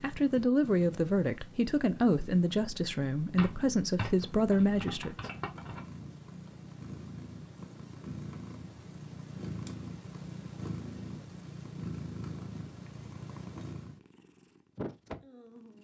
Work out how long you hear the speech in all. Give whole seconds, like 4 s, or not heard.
5 s.